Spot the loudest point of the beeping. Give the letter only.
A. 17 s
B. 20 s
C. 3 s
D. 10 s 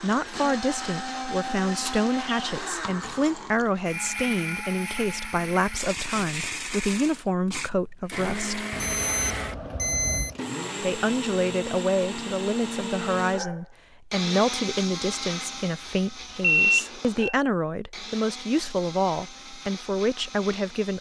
A.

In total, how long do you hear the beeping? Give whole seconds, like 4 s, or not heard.
3 s.